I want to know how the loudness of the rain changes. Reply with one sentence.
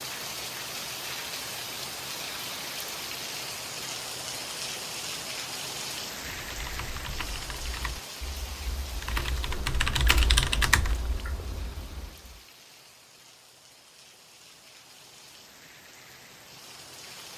The volume of the rain goes down.